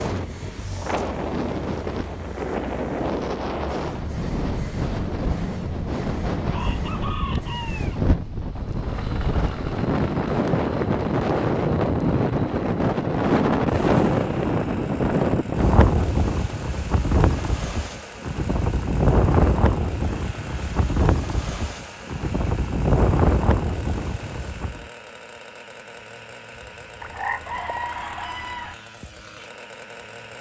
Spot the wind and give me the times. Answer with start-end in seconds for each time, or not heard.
0.0-24.9.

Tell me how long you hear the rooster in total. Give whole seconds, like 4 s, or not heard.
3 s.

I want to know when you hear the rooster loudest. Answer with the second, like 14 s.
27 s.